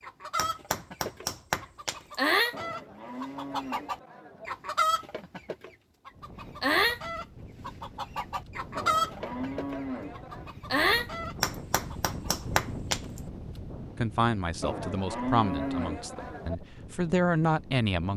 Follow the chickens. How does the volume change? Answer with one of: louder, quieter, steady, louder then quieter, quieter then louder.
steady.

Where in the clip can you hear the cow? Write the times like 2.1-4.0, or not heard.
2.5-4.5, 8.8-10.5, 14.6-16.6.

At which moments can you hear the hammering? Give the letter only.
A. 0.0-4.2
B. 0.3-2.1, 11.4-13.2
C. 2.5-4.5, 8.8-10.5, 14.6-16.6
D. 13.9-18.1
B.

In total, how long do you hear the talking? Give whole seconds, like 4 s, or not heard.
4 s.